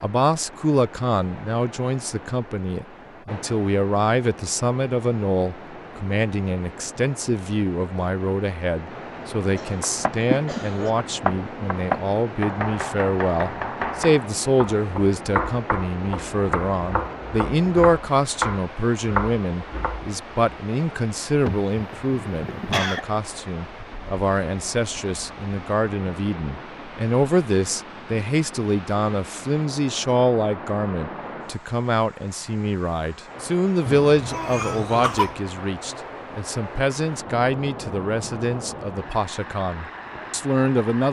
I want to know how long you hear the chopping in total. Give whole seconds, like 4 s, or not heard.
11 s.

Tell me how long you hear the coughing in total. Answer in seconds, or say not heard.
5 s.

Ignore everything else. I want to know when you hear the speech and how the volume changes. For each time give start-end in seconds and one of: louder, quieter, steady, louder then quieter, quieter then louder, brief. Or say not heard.
0.0-41.0 steady.